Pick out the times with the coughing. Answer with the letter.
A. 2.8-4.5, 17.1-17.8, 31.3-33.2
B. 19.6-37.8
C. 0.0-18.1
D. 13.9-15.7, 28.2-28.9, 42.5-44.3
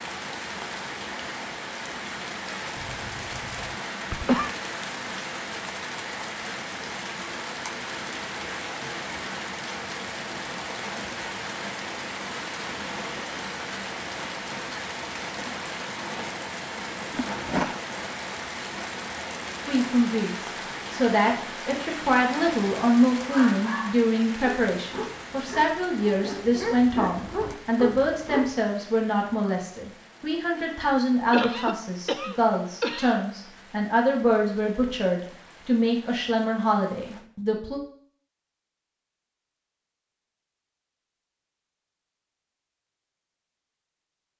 A.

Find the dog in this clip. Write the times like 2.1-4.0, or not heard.
23.2-28.9.